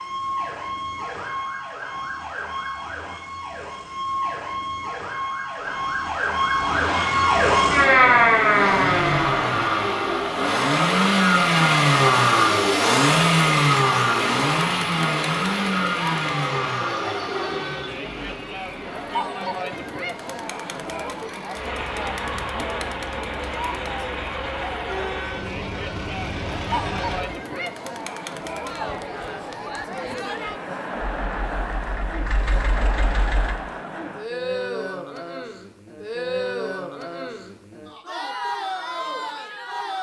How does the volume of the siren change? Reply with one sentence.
The loudness of the siren goes up.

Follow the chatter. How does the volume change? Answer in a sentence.
The volume of the chatter stays about the same.